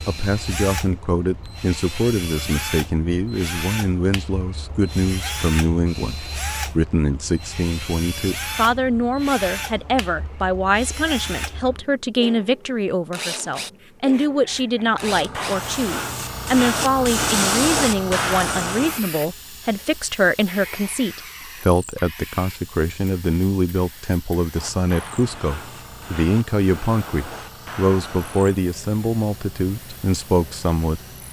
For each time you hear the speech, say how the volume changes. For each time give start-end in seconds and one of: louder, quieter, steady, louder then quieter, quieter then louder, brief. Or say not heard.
0.1-31.0 steady.